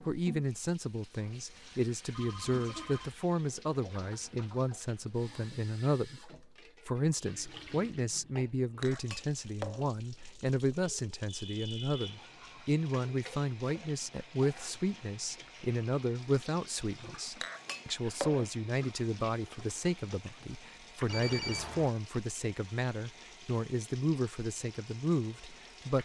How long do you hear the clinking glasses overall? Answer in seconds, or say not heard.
2 s.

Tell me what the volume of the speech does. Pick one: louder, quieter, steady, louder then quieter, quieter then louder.
steady.